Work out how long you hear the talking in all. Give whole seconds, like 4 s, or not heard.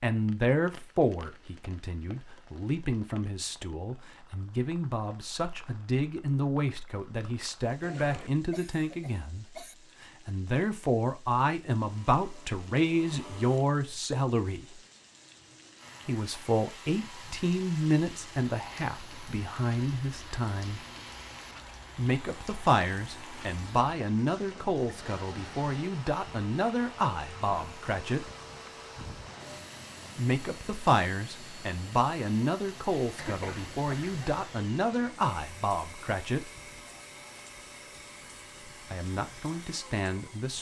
34 s.